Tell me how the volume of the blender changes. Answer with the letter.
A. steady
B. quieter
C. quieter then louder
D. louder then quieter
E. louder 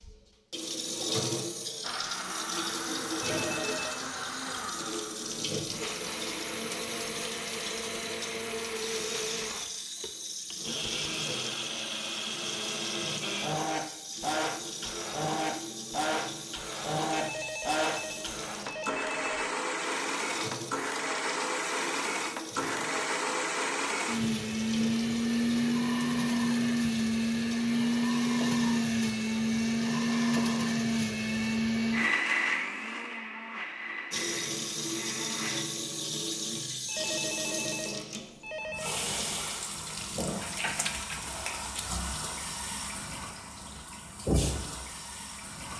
E.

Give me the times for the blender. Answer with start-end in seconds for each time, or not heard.
1.8-35.6.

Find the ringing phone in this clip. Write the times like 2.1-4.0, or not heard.
3.2-4.0, 17.1-19.2, 36.9-39.0.